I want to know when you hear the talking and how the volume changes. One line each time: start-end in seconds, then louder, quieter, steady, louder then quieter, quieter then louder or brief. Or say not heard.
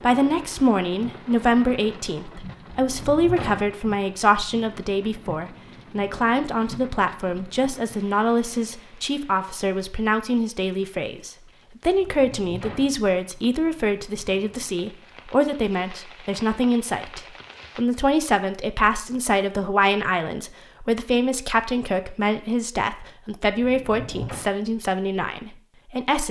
0.0-26.2 steady.